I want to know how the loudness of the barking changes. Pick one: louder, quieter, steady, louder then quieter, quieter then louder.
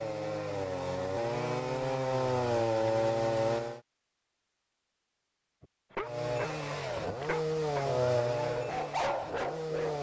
louder.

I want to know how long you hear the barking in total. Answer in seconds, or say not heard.
4 s.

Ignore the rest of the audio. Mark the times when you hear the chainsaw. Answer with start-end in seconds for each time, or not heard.
0.0-3.8, 6.0-9.9.